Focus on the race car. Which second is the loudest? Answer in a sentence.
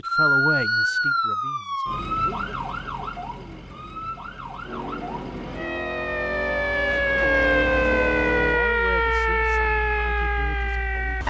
The loudest moment of the race car is at 8 seconds.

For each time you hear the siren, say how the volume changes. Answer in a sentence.
The siren can be heard from 0.0 to 11.2 s, getting quieter then louder.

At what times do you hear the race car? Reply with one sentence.
The race car can be heard from 4.6 to 8.6 s.